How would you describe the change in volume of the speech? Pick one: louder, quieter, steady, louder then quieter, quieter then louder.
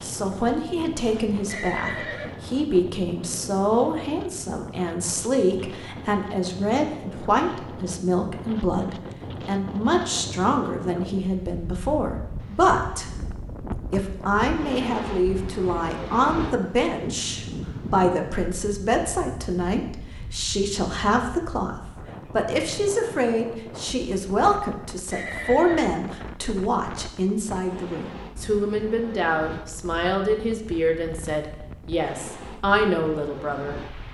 steady.